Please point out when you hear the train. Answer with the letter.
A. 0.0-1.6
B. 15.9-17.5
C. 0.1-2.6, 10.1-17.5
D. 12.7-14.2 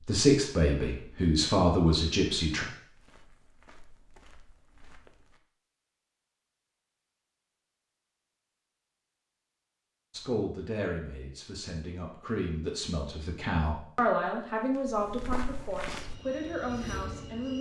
B.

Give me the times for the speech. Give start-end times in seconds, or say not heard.
0.1-2.6, 10.1-17.5.